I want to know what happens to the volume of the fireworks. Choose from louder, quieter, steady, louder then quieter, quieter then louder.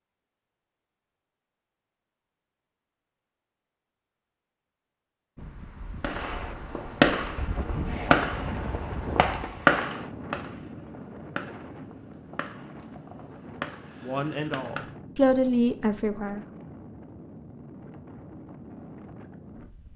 quieter.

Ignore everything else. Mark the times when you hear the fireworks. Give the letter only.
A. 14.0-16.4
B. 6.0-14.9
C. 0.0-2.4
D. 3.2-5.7
B.